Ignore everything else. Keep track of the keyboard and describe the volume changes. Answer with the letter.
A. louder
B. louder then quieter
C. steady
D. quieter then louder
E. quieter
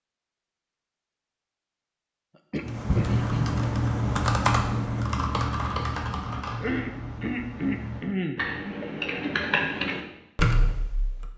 D.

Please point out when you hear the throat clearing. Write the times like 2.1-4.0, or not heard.
2.5-3.5, 6.6-8.4.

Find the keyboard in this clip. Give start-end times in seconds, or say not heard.
2.6-11.3.